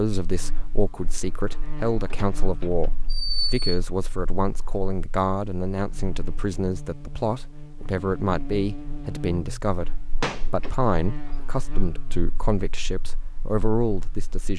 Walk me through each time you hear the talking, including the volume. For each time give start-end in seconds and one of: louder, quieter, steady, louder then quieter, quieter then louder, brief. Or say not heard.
0.0-14.5 steady.